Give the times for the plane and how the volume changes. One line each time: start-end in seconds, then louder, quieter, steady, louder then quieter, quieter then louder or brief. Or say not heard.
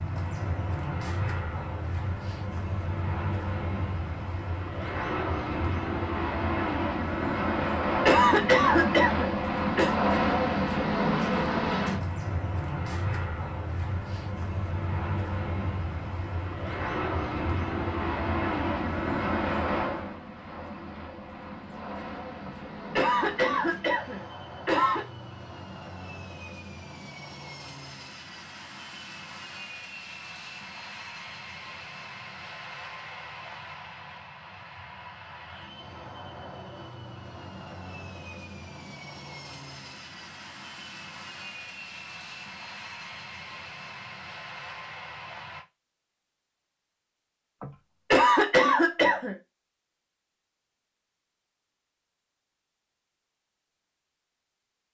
0.0-45.6 quieter.